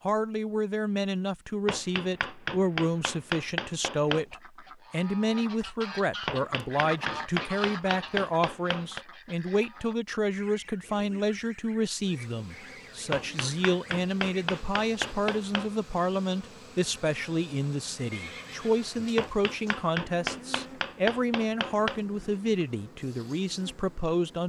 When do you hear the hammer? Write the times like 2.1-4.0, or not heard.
1.6-4.2, 6.2-9.1, 13.1-15.7, 19.1-22.0.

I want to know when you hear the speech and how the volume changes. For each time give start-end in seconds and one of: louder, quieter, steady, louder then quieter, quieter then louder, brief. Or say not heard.
0.0-24.4 steady.